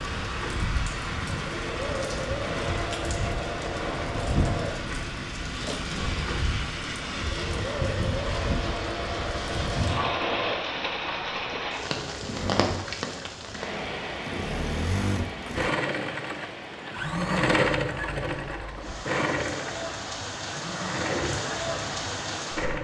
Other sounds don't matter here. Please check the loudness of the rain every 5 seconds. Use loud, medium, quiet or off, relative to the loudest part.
loud, loud, loud, medium, loud.